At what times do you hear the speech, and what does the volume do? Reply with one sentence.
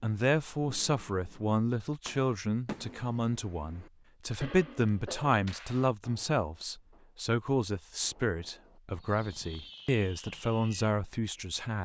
You can hear the speech from 0.0 to 11.8 s, at a steady volume.